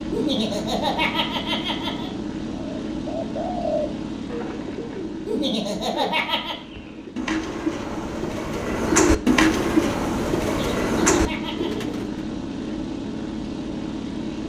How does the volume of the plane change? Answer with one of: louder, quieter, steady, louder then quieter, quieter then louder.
quieter then louder.